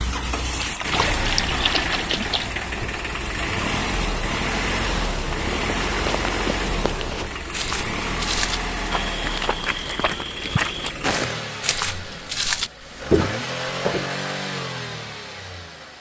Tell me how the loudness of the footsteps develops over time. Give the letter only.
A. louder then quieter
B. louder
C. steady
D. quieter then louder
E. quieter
B.